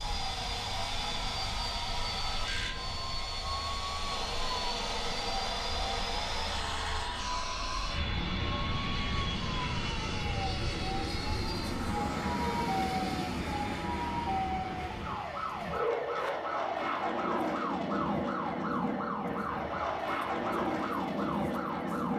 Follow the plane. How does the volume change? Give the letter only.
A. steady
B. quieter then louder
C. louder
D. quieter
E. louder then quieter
A.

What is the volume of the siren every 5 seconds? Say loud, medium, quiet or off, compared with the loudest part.
medium, medium, loud, loud, loud.